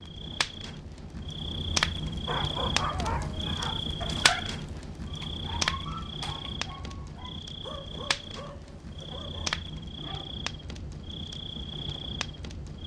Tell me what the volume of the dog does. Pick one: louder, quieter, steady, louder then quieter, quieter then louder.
quieter.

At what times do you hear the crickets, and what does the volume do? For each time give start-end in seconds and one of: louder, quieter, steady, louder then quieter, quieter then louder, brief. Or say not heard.
0.0-12.8 quieter.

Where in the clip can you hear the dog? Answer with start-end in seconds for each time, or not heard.
2.2-10.3.